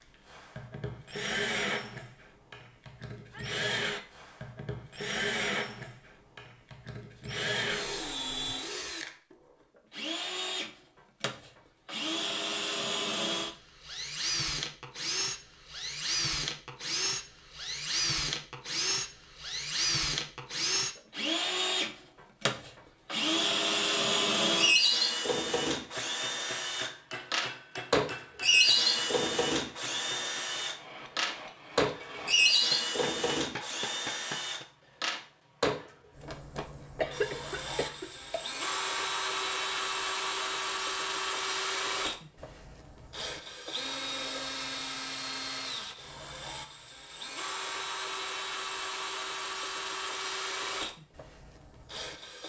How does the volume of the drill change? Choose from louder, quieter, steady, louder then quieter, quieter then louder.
louder then quieter.